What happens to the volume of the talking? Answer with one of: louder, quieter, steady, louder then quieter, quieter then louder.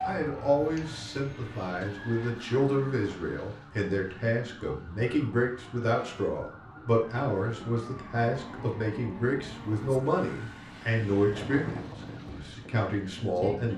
steady.